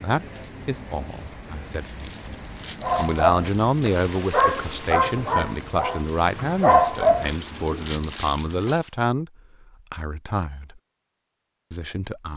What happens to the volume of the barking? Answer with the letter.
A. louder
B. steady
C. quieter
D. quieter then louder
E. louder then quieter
D.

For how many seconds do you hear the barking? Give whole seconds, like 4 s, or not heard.
5 s.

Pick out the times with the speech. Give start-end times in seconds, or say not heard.
0.0-9.3, 9.9-10.8, 11.7-12.3.